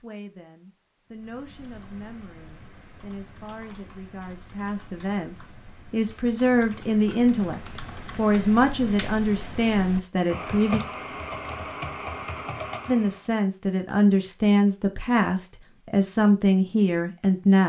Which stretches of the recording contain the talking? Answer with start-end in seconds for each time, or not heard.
0.0-10.8, 12.8-17.6.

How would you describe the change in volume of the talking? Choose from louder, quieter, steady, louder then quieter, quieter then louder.
louder.